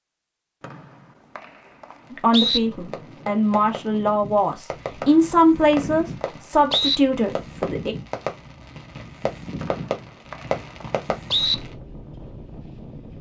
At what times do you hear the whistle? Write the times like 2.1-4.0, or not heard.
0.6-2.6, 5.0-7.0, 9.6-11.6.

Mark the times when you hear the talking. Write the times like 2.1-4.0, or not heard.
2.1-8.0.